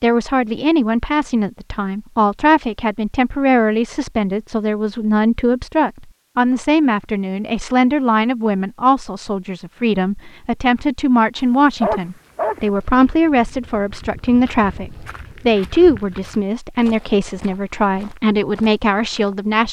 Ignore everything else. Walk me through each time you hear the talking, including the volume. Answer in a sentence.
You can hear the talking from 0.0 to 19.6 s, at a steady volume.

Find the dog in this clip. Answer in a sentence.
You can hear the dog from 11.3 to 12.7 s.